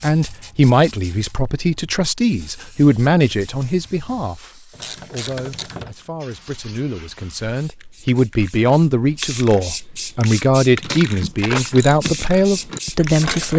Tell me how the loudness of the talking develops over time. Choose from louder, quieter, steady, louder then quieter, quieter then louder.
quieter then louder.